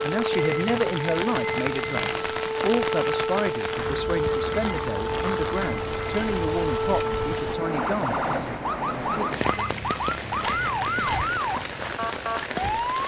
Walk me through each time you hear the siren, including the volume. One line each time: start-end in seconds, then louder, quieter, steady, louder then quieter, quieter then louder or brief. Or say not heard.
0.0-13.0 steady.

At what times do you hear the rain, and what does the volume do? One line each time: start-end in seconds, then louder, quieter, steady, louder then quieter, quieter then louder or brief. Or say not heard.
0.0-13.0 steady.